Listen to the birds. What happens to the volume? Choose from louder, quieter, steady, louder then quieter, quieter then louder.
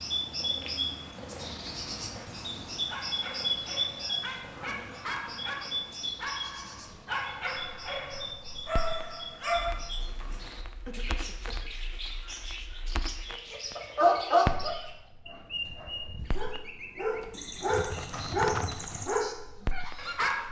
quieter.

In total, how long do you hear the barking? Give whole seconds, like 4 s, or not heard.
14 s.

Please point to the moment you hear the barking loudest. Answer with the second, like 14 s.
14 s.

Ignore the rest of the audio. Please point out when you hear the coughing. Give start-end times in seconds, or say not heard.
4.7-5.2, 10.8-11.8.